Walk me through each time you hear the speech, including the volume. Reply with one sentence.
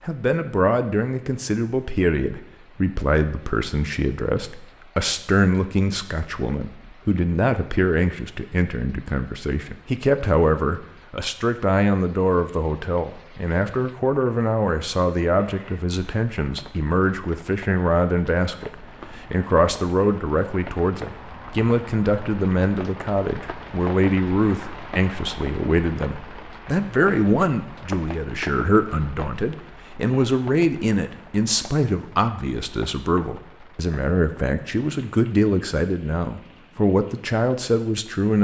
You can hear the speech from 0.1 to 38.3 s, at a steady volume.